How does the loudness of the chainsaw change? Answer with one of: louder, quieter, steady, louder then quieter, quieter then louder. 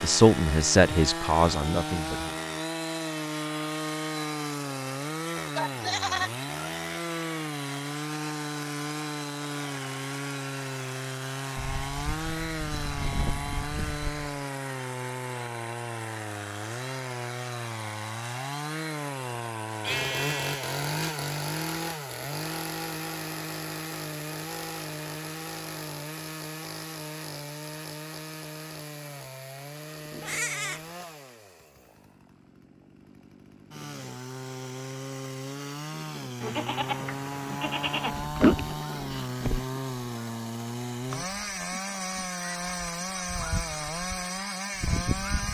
quieter then louder.